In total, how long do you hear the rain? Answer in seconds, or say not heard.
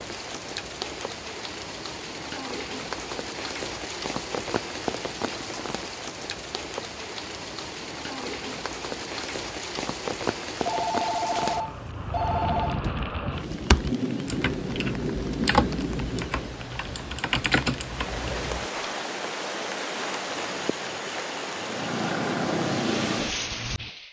24 s.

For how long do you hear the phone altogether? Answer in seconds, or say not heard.
2 s.